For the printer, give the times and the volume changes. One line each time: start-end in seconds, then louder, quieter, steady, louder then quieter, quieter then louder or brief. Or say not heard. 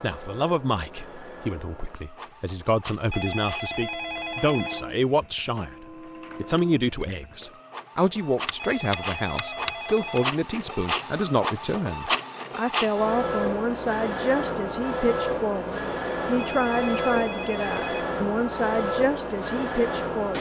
0.0-20.3 louder.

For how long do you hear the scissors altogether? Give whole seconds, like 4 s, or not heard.
2 s.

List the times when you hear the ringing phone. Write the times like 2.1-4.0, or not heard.
3.1-4.9, 8.6-10.3, 16.4-18.1.